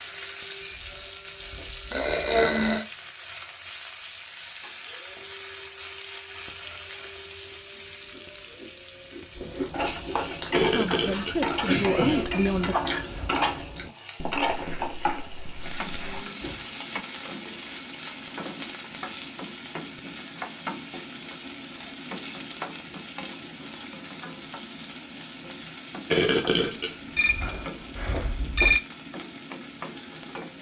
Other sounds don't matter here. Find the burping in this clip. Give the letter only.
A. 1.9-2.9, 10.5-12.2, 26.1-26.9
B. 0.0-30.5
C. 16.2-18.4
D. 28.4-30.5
A.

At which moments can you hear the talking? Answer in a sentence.
The talking can be heard from 10.6 to 12.8 s.